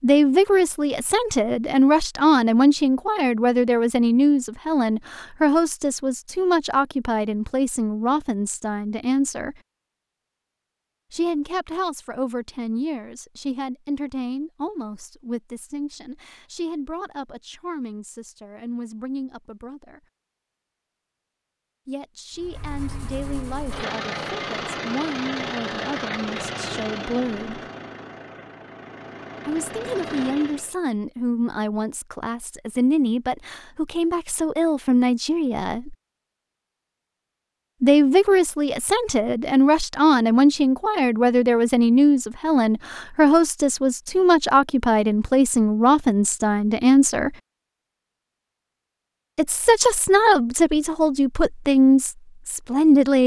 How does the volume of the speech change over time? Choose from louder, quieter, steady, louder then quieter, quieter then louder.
quieter then louder.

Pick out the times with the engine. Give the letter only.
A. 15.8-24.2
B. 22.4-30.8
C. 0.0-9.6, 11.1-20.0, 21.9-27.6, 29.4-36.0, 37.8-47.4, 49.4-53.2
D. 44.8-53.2
B.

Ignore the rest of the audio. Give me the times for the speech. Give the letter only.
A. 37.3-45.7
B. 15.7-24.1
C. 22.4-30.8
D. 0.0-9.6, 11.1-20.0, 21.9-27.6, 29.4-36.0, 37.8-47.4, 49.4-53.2
D.